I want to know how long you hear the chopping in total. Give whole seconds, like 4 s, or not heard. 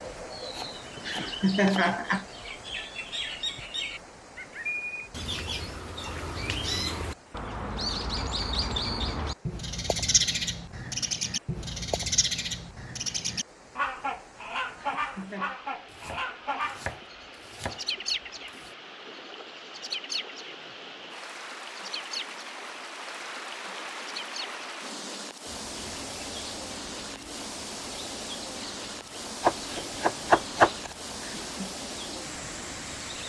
6 s.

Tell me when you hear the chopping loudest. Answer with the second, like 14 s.
30 s.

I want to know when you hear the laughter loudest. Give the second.
2 s.